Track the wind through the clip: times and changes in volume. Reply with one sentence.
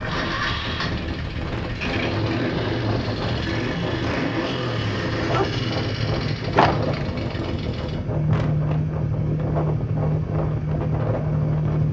You can hear the wind from 0.0 to 11.8 s, at a steady volume.